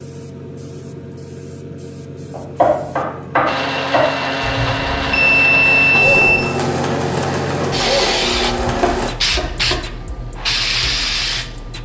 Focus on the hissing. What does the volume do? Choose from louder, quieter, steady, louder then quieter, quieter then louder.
louder.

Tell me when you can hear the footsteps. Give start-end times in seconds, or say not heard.
not heard.